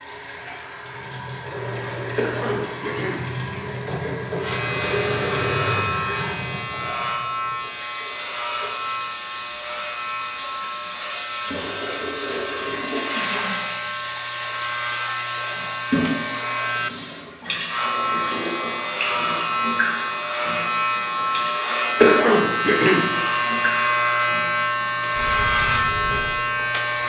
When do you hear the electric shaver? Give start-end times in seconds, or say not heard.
4.4-27.0.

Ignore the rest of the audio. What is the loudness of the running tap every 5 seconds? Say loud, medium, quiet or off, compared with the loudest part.
loud, loud, loud, loud, medium, medium.